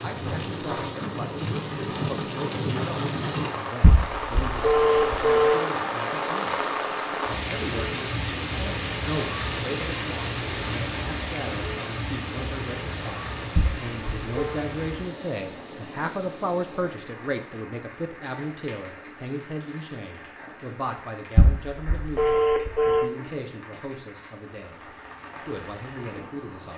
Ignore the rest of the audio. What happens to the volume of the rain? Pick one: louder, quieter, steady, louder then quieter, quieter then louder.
quieter.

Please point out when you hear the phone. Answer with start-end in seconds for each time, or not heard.
3.8-5.6, 13.6-14.6, 21.4-23.1.